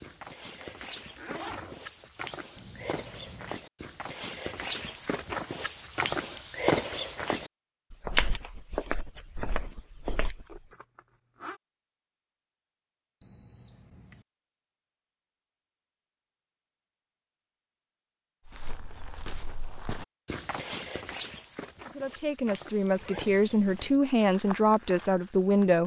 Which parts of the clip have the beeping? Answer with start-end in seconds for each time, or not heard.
2.5-3.6, 13.2-14.2, 22.9-23.7.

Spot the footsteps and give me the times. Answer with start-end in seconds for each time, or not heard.
0.0-10.6, 18.4-25.8.